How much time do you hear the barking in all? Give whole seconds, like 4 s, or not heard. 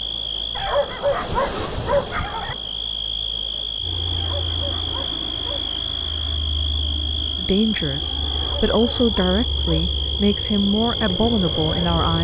5 s.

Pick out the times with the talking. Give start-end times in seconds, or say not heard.
7.3-12.1.